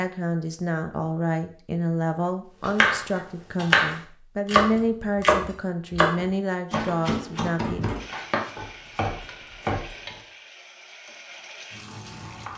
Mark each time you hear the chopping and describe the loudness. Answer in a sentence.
You can hear the chopping from 2.6 to 10.2 s, getting quieter.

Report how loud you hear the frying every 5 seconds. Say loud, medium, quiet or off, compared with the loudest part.
off, loud, loud.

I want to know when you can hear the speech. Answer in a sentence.
The speech can be heard from 0.0 to 7.8 s.